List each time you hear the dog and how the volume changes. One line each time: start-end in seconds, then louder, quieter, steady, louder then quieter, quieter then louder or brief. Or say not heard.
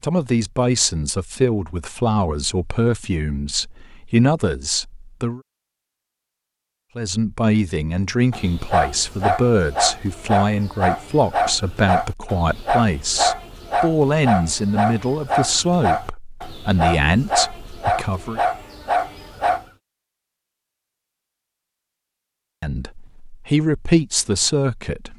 8.3-19.6 steady.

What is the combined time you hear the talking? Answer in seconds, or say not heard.
19 s.